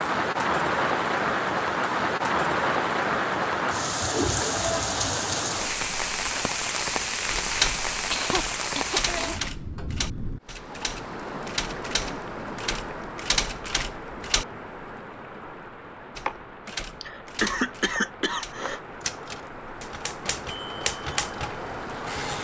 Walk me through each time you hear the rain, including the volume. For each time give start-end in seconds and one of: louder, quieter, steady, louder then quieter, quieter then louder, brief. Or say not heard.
0.0-22.3 quieter.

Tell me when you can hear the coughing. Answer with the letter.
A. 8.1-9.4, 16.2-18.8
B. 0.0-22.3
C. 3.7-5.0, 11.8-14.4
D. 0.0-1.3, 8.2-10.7
A.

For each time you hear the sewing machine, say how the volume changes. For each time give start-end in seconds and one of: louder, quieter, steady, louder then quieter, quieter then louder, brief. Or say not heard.
not heard.